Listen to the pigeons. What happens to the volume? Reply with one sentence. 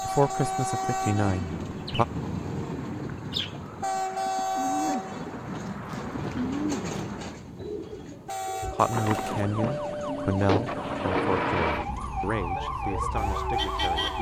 The loudness of the pigeons goes up, then down.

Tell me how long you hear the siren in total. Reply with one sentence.
You can hear the siren for 5 seconds altogether.